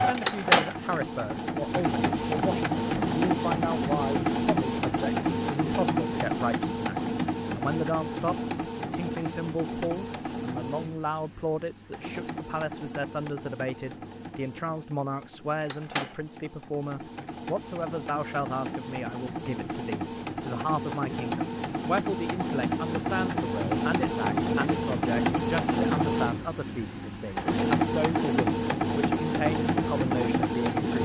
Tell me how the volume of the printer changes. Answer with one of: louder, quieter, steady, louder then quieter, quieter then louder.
quieter then louder.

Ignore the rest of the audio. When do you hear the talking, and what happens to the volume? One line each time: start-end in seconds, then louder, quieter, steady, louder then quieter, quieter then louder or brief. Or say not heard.
0.1-30.9 steady.